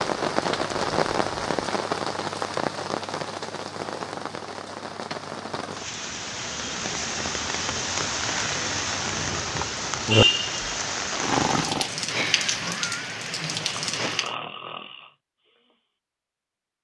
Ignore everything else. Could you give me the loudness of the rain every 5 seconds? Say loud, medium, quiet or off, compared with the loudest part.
loud, loud, loud, off.